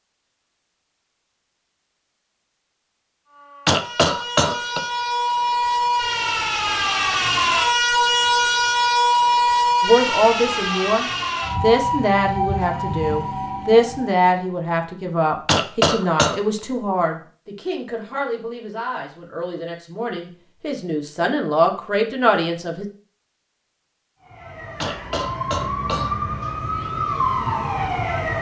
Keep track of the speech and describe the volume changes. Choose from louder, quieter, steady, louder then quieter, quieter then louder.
quieter then louder.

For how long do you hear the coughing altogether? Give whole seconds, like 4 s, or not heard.
4 s.